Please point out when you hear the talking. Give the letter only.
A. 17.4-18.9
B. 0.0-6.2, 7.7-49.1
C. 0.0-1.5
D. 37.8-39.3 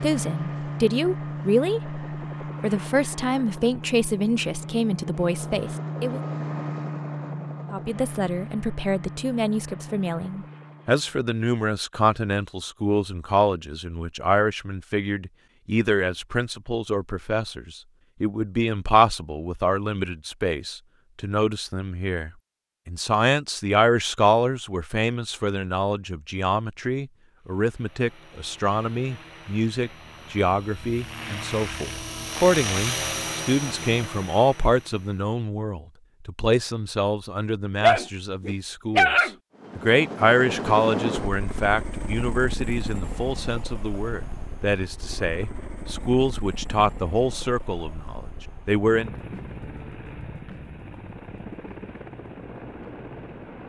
B.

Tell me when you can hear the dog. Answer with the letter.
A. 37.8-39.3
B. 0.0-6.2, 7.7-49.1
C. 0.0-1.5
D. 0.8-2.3
A.